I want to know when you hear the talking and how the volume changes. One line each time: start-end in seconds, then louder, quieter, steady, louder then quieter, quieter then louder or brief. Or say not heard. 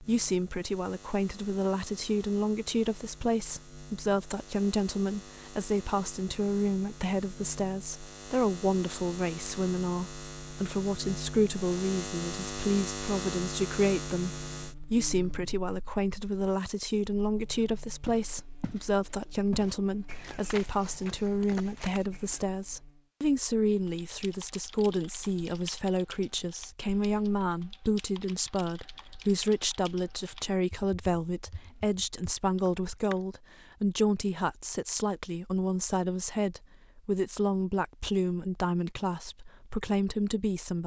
0.0-40.8 steady.